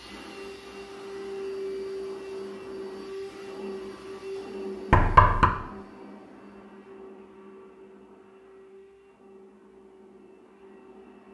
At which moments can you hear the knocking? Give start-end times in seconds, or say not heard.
4.9-5.5.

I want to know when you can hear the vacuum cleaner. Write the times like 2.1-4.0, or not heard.
0.0-11.2.